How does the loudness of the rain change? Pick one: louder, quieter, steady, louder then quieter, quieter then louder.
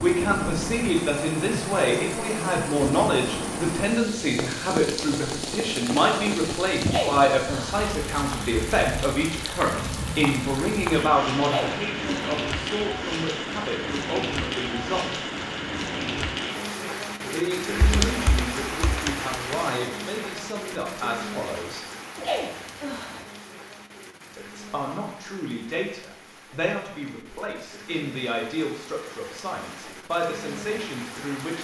quieter.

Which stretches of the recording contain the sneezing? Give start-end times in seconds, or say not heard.
6.8-7.9, 11.4-12.3, 22.1-23.2.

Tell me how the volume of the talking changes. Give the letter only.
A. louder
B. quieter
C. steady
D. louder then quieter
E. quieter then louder
B.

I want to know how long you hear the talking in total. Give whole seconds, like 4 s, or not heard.
27 s.